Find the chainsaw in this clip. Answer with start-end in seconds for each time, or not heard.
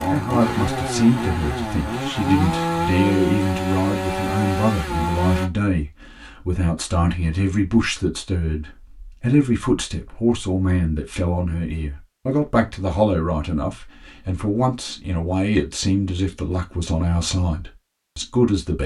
0.0-5.5.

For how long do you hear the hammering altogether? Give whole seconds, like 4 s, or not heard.
not heard.